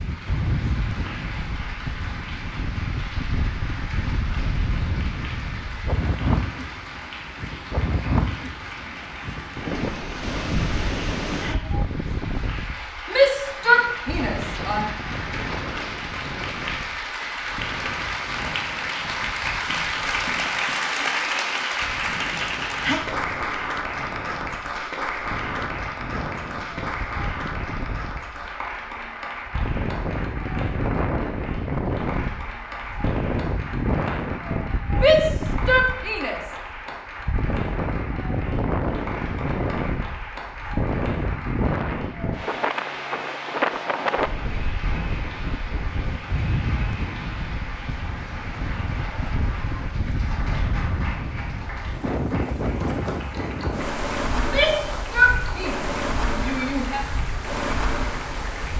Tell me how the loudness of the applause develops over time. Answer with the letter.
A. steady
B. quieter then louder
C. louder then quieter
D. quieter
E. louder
C.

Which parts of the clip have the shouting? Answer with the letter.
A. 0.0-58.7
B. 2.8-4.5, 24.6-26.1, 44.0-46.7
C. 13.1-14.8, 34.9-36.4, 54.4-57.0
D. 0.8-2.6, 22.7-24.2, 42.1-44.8
C.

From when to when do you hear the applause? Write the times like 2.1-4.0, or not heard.
0.0-58.7.